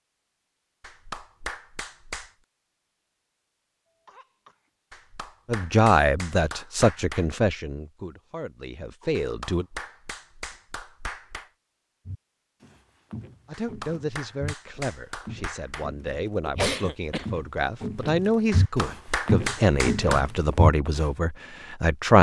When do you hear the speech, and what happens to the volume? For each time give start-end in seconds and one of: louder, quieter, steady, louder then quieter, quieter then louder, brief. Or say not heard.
5.5-9.7 quieter then louder
13.4-22.1 louder.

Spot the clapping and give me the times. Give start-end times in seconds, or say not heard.
0.8-2.3, 4.9-7.2, 9.1-11.5, 13.6-15.9, 18.5-20.2.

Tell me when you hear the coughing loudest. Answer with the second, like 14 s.
17 s.